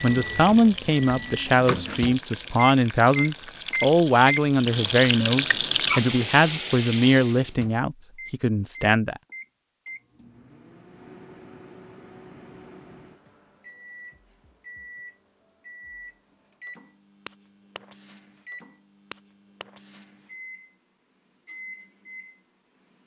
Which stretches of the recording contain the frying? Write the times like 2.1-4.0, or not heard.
0.0-7.5.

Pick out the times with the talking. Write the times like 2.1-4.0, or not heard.
0.0-9.2.